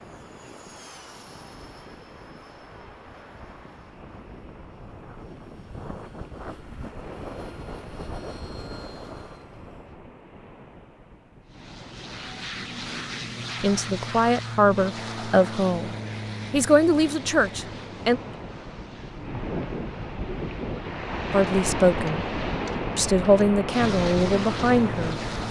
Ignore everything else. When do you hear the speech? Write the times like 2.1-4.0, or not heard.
13.6-18.2, 21.3-22.2, 22.9-25.1.